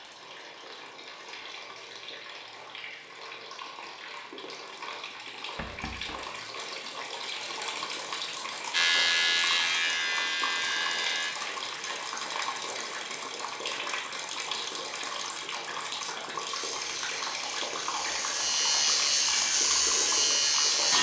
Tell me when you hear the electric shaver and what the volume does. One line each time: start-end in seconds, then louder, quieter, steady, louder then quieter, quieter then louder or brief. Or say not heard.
8.7-11.3 brief
16.4-20.9 louder.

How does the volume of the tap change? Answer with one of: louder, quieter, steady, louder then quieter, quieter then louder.
louder.